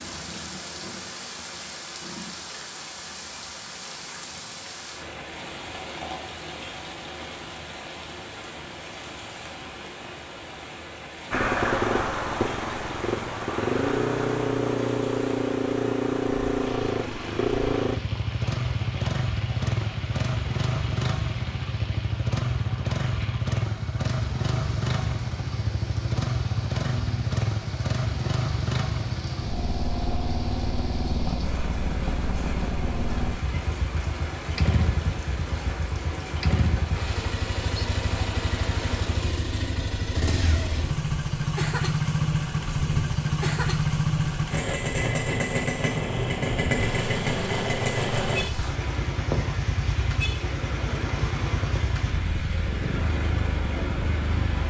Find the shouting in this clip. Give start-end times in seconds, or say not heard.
not heard.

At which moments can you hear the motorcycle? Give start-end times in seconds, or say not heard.
11.3-54.6.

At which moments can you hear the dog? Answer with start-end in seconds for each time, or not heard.
not heard.